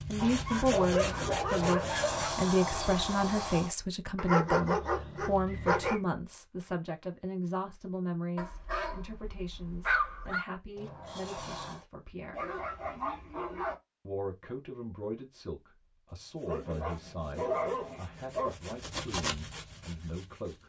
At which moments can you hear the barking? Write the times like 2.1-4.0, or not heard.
0.2-2.3, 4.2-6.0, 8.3-10.4, 12.3-13.8, 16.4-18.6.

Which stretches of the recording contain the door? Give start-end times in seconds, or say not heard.
1.6-3.8, 10.8-11.8.